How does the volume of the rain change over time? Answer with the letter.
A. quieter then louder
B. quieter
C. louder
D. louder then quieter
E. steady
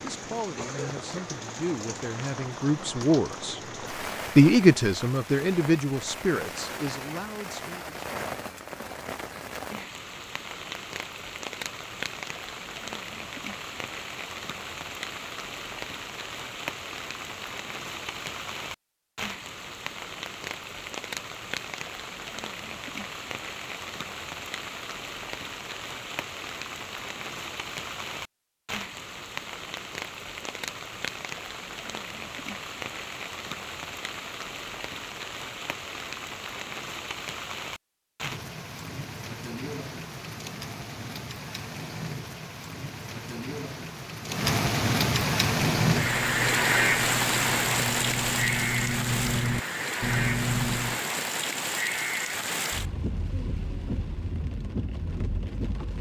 C.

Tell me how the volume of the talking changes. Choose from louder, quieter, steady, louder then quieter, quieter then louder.
louder then quieter.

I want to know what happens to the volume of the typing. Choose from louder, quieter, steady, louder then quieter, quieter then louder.
louder.